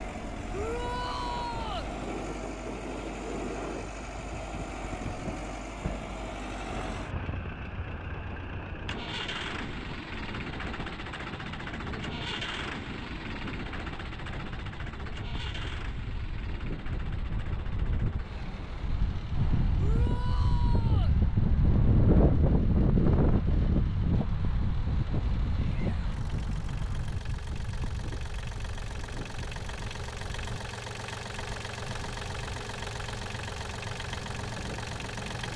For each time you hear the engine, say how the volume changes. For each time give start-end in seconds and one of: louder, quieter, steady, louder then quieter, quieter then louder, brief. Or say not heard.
0.0-35.5 quieter then louder.